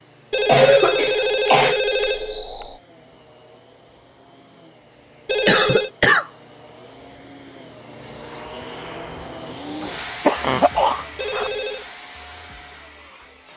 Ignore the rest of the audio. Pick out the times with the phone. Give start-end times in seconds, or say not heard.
0.3-2.8, 5.2-5.9, 11.2-11.8.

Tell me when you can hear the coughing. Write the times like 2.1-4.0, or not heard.
0.5-1.8, 5.5-6.2, 10.2-11.5.